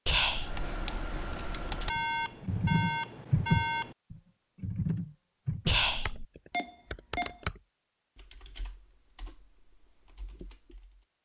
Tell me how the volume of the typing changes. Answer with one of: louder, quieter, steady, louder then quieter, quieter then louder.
louder then quieter.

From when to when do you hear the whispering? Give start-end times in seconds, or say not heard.
0.1-0.7, 5.7-6.2.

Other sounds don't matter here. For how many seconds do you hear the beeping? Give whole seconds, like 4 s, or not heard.
3 s.